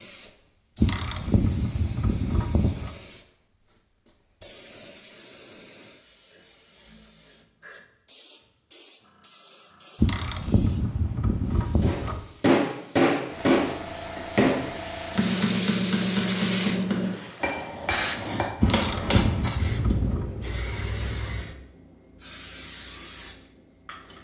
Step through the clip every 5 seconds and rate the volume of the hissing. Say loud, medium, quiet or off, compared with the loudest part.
quiet, quiet, medium, loud, medium.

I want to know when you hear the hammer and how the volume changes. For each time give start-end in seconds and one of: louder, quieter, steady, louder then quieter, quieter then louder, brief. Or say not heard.
11.8-19.5 quieter.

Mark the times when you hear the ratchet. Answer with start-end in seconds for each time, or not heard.
0.8-2.9, 10.0-12.2, 18.6-20.2.